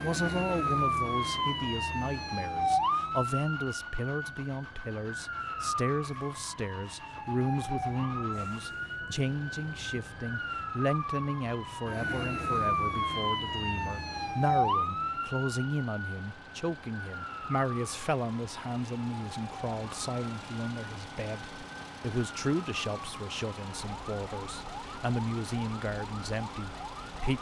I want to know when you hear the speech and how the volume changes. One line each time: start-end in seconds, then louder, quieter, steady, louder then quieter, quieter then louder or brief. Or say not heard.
0.0-27.3 steady.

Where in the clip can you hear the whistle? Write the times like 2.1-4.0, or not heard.
not heard.